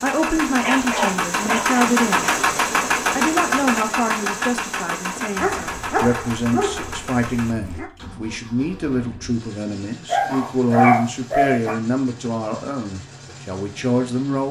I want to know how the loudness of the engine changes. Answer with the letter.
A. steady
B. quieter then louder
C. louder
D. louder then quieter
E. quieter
E.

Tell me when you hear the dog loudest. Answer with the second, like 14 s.
11 s.